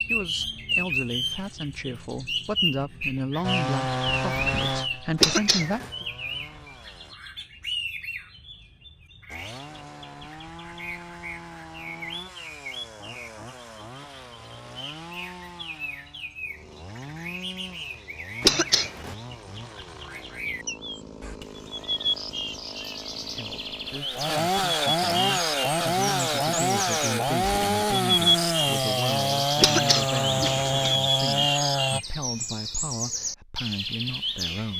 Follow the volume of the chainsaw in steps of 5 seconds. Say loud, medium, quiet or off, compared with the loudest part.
loud, quiet, quiet, quiet, medium, loud, loud.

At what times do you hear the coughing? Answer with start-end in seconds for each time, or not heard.
5.2-5.9, 18.4-19.1, 29.6-30.9.